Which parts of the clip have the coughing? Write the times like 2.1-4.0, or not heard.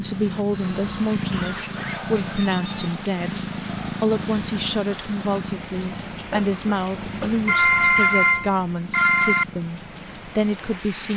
1.2-2.0, 6.3-7.5.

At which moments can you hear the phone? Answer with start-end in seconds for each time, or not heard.
0.5-2.8, 7.5-9.4.